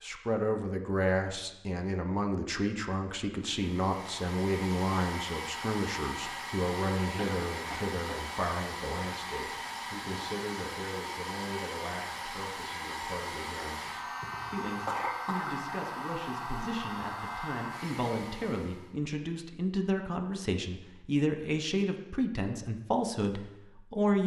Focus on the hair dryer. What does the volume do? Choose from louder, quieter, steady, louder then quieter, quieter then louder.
steady.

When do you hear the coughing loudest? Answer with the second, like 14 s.
15 s.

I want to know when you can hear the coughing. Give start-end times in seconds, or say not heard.
7.1-8.2, 14.2-15.6.